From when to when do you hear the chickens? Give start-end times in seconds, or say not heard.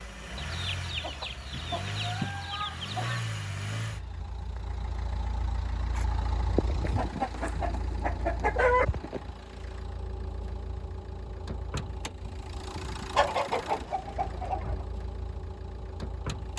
0.3-3.3, 6.8-8.8, 13.2-14.8.